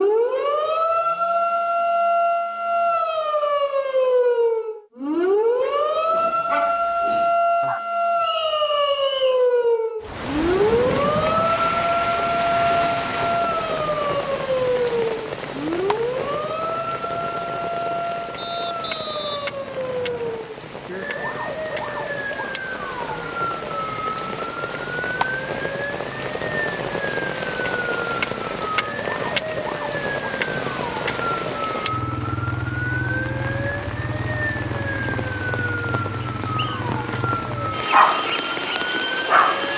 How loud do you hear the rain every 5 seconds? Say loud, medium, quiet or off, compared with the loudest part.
off, off, loud, medium, medium, loud, loud, loud.